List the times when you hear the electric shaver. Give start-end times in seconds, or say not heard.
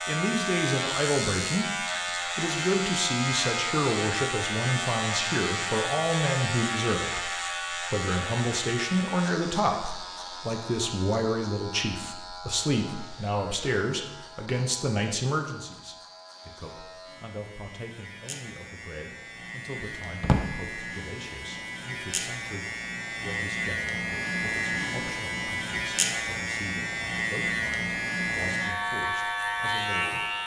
0.0-30.4.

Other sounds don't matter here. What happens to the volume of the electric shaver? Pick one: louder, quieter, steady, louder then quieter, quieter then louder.
quieter then louder.